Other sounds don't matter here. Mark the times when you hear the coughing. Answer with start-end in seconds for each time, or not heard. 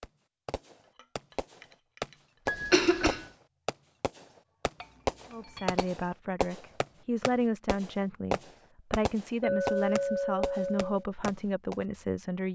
2.5-3.2.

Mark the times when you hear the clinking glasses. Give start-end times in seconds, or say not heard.
0.9-2.1, 4.8-6.0, 9.4-11.1.